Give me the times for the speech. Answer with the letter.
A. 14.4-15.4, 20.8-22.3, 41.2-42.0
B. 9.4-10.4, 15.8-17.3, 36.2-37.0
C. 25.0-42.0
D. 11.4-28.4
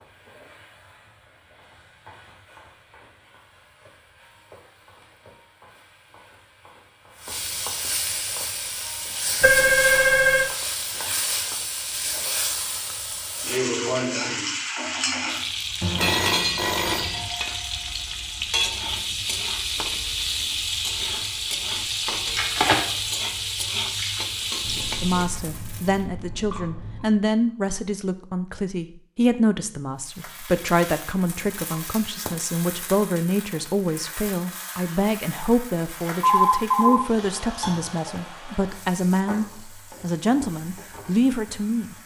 C.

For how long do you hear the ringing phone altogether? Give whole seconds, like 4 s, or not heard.
3 s.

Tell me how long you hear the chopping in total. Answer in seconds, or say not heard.
not heard.